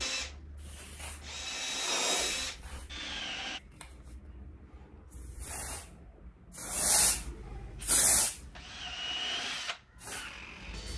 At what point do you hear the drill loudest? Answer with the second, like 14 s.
2 s.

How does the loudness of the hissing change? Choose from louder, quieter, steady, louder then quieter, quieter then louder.
louder then quieter.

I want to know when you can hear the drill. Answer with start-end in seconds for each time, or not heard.
0.0-3.6, 7.8-10.9.